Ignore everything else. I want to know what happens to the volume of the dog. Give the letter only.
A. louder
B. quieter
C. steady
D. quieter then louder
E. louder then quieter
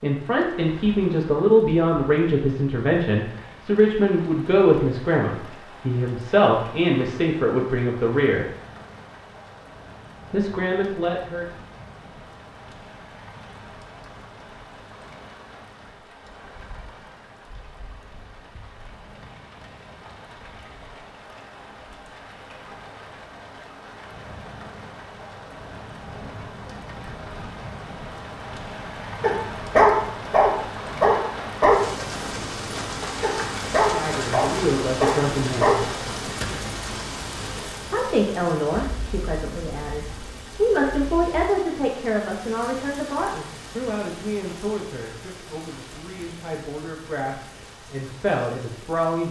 D.